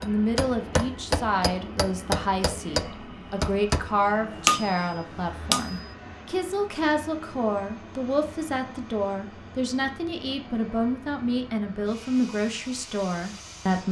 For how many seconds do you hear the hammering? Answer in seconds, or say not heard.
6 s.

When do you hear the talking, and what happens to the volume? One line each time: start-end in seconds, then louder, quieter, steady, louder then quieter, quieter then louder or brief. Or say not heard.
0.0-13.8 steady.